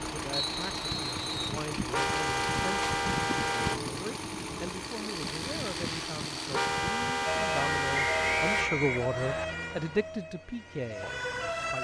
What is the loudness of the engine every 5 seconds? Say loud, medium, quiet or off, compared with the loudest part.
loud, loud, off.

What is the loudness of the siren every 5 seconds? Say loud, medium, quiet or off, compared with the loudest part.
off, loud, loud.